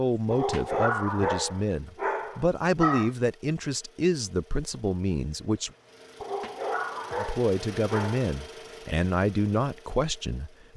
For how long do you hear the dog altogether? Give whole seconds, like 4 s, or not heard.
5 s.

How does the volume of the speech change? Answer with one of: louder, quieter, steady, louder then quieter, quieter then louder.
steady.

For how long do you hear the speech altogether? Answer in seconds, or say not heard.
9 s.